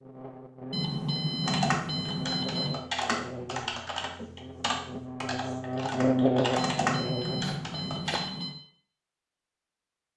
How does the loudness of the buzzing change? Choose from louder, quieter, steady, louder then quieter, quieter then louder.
louder.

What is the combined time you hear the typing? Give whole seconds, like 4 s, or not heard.
7 s.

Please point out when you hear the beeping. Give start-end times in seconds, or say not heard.
0.7-2.8, 6.5-8.6.